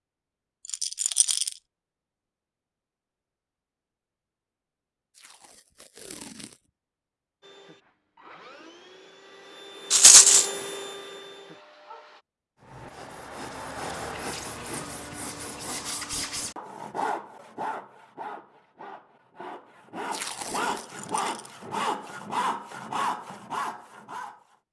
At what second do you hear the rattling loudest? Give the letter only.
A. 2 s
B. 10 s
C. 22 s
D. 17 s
B.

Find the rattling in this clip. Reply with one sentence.
The rattling can be heard from 0.7 to 1.5 s, from 9.9 to 10.4 s and from 20.8 to 21.5 s.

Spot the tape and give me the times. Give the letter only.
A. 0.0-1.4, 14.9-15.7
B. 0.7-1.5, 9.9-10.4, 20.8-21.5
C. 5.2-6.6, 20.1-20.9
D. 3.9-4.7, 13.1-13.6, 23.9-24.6
C.